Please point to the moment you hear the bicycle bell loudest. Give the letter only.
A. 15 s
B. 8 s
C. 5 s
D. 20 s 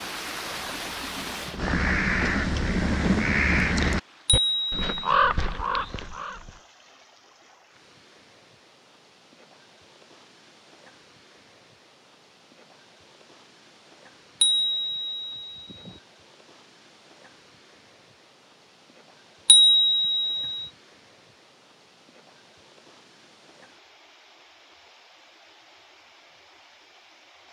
D.